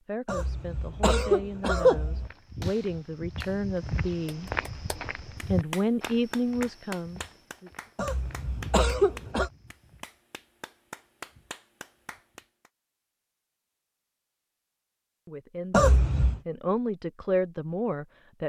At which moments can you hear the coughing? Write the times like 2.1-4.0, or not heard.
0.2-2.3, 8.0-9.5, 15.7-16.4.